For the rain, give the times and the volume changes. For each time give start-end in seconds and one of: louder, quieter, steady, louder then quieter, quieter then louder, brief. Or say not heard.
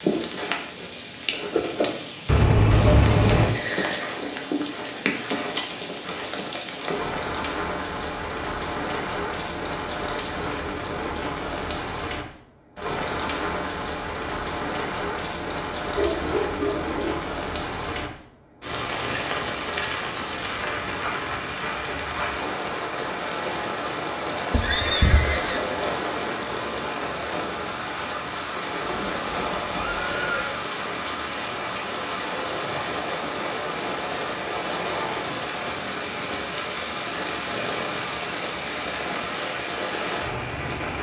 0.0-40.9 steady.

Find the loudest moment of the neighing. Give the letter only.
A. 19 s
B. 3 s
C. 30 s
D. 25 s
B.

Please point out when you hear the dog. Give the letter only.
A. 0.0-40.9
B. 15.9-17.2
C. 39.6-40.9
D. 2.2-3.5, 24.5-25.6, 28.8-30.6
B.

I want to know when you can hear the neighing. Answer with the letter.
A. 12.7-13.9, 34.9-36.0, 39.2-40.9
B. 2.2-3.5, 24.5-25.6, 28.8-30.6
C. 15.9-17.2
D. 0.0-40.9
B.